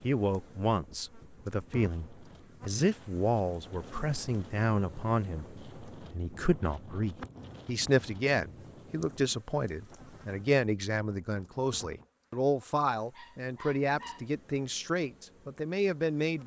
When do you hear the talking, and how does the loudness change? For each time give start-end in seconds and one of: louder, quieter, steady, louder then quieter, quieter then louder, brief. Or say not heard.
0.0-16.4 steady.